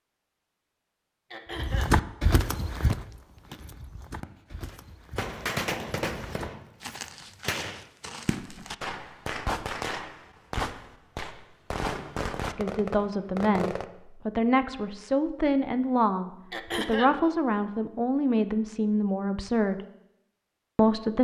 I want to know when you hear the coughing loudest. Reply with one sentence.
The volume of the coughing peaks at 17 seconds.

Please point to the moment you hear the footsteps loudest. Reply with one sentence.
The loudest moment of the footsteps is at 2 seconds.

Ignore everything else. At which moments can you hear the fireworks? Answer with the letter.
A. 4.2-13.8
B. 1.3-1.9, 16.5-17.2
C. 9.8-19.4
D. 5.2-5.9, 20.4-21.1
A.